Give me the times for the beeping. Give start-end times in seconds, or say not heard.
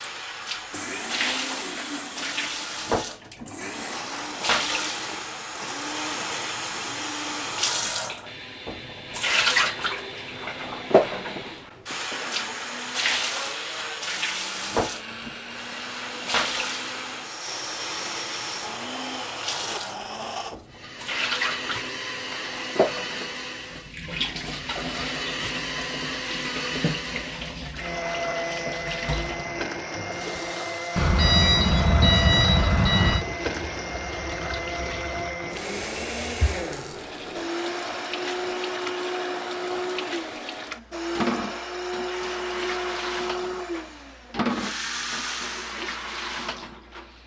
30.9-33.2.